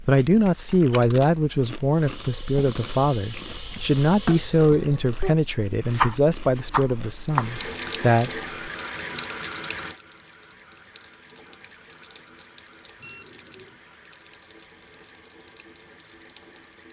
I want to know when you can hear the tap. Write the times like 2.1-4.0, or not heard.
1.9-5.2, 7.2-16.8.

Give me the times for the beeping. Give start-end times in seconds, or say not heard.
13.0-13.8.